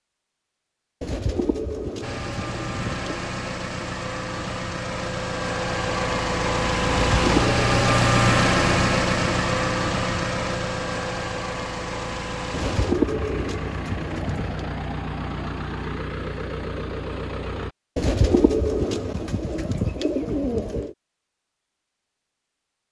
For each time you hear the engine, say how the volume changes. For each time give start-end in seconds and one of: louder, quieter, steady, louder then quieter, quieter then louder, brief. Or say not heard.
2.0-17.8 louder then quieter.